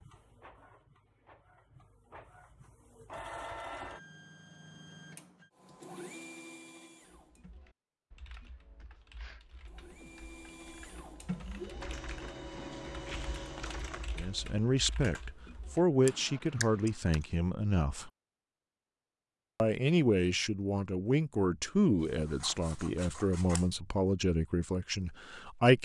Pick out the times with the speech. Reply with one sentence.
You can hear the speech from 14.2 to 18.1 s and from 19.6 to 25.8 s.